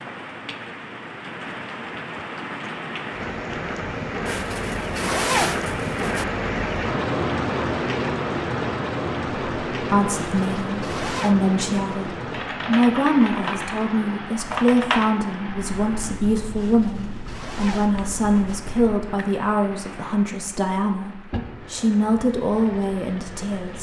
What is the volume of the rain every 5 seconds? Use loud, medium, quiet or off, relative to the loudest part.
medium, loud, medium, quiet, quiet.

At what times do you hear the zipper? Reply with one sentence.
The zipper can be heard from 4.2 to 6.2 s, from 10.2 to 11.3 s and from 16.6 to 18.6 s.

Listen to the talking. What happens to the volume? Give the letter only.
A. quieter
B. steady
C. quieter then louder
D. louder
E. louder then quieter
B.